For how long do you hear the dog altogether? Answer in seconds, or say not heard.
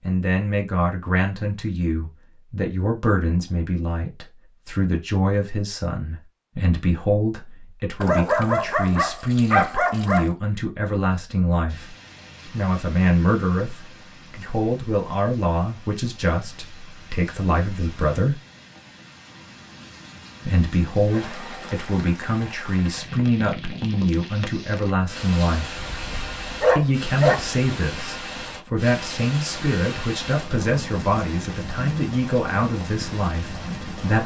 4 s.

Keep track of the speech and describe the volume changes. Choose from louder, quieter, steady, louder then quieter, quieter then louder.
steady.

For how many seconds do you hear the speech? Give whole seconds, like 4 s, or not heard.
31 s.